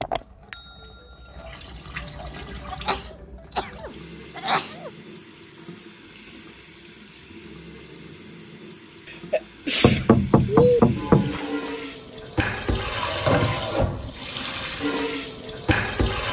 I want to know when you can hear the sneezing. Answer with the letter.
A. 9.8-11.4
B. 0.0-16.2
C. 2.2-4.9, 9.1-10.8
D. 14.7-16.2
C.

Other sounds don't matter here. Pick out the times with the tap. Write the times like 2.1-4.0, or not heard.
0.0-16.2.